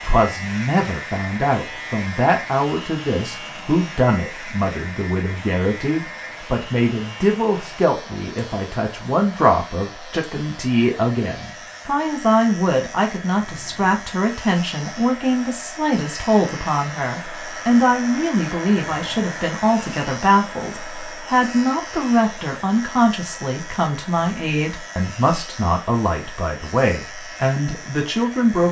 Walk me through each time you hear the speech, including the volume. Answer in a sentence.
The speech can be heard from 0.0 to 28.6 s, at a steady volume.